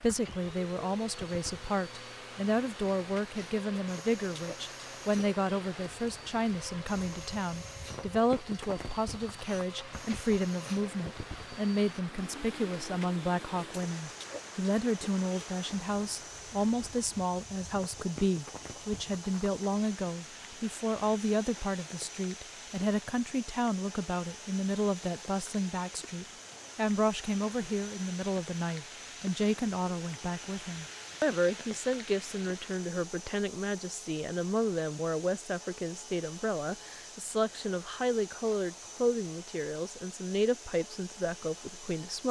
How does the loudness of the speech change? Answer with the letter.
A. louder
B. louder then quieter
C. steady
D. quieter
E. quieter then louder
C.